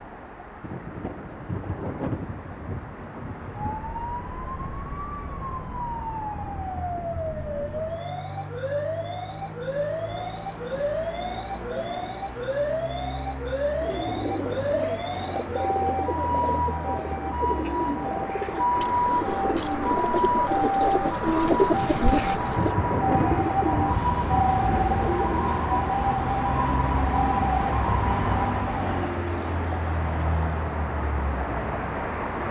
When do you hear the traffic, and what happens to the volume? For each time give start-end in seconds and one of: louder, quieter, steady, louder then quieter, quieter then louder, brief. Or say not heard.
0.0-32.4 louder.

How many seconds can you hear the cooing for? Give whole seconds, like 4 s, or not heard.
12 s.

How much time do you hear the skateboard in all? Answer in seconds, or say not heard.
not heard.